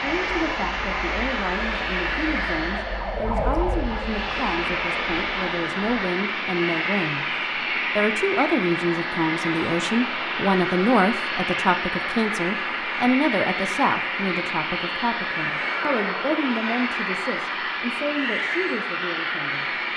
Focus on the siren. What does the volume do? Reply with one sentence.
The volume of the siren goes up, then down.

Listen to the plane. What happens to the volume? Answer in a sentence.
The loudness of the plane stays about the same.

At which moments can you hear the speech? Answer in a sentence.
You can hear the speech from 0.0 to 19.8 s.